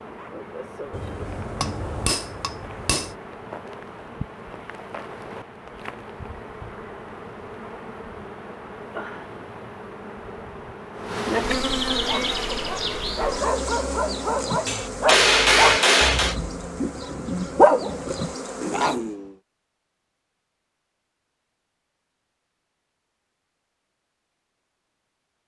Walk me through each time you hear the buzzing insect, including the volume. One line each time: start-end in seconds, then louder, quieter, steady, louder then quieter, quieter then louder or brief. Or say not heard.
0.0-19.0 louder then quieter.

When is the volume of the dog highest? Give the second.
18 s.